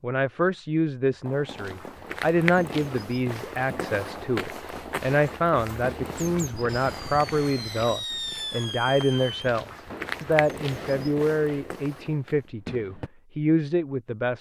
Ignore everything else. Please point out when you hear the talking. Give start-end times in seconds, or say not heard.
0.0-14.3.